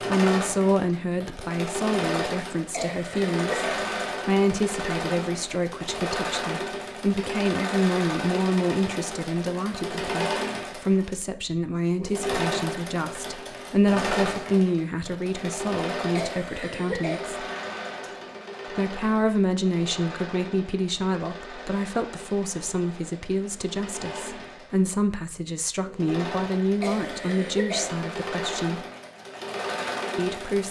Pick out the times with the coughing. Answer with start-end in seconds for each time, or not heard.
2.7-3.9, 16.1-17.3, 26.8-28.0.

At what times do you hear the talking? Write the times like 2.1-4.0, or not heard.
0.0-17.4, 18.6-28.8, 30.1-30.6.